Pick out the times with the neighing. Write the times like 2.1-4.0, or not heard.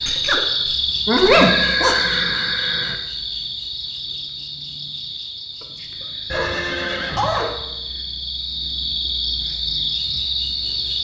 1.4-3.0, 6.3-7.5.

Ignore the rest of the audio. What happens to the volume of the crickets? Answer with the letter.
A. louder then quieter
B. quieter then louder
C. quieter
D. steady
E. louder
B.